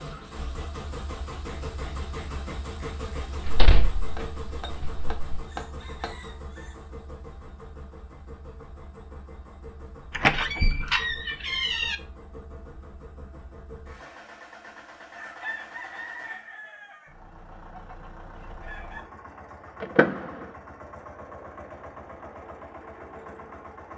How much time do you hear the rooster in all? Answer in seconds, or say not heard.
5 s.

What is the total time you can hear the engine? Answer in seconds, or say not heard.
24 s.